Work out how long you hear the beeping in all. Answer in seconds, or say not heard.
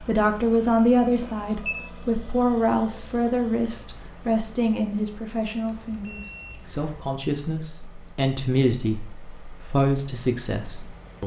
2 s.